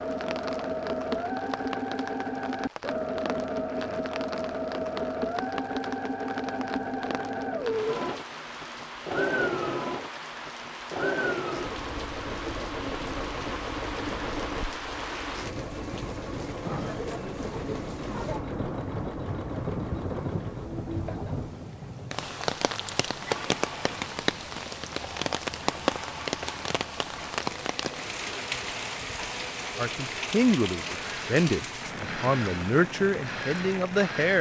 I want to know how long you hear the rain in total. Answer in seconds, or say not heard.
34 s.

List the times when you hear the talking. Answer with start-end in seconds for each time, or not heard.
29.8-34.3.